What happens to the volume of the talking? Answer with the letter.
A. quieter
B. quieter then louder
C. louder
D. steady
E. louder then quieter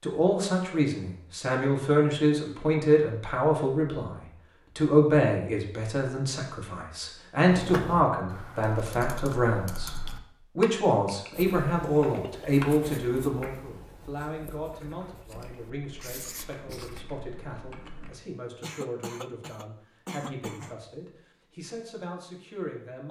A.